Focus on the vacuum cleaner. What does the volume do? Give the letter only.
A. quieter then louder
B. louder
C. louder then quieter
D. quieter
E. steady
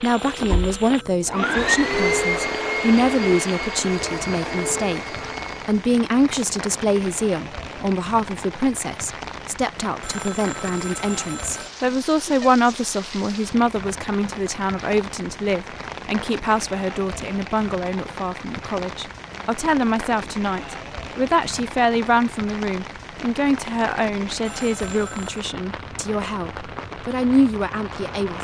C.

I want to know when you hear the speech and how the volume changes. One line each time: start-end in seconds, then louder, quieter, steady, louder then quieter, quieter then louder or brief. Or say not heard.
0.0-28.3 steady.